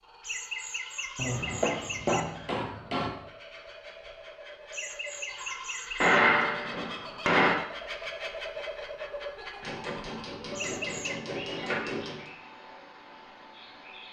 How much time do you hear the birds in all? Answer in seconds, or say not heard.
14 s.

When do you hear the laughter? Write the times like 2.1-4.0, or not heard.
0.2-2.2, 4.7-6.2, 10.5-11.2.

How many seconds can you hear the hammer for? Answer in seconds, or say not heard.
6 s.